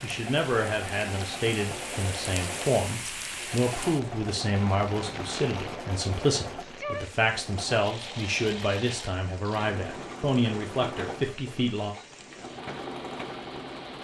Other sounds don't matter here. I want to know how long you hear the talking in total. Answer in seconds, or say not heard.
12 s.